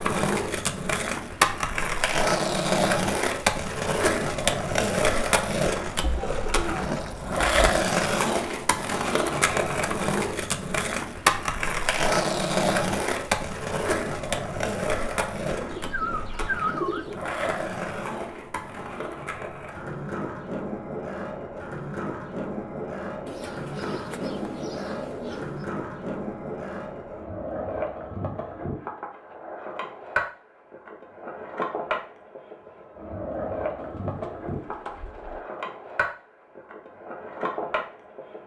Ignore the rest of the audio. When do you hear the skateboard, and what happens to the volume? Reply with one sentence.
The skateboard can be heard from 0.0 to 38.4 s, getting quieter.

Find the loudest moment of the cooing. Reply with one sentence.
The loudest moment of the cooing is at 17 seconds.